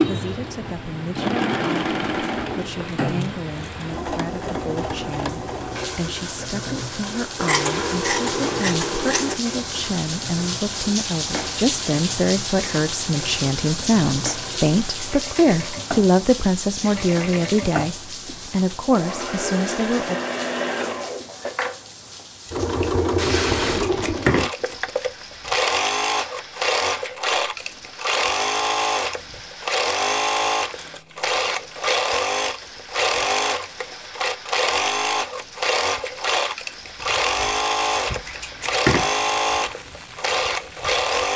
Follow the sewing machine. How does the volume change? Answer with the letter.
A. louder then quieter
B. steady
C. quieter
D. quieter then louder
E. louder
D.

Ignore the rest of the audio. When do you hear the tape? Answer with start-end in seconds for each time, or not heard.
3.2-3.8, 23.1-24.4, 30.4-31.2.